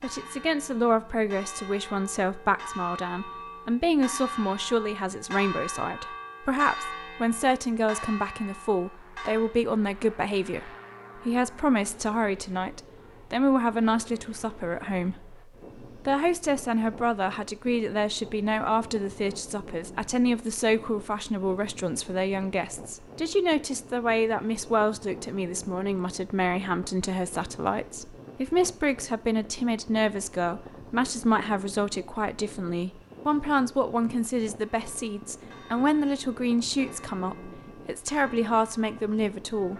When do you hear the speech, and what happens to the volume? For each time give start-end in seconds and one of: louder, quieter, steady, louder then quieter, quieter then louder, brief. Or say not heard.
0.0-39.7 steady.